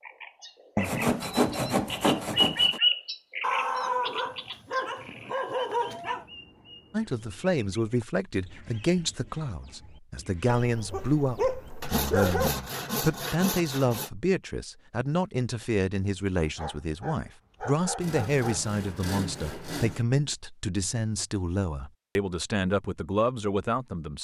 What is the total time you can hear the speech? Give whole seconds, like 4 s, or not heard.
17 s.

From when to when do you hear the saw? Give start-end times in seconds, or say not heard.
0.8-2.8, 11.8-14.1, 18.0-20.1.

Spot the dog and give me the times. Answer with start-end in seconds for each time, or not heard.
3.4-6.2, 10.6-12.5, 16.4-18.6.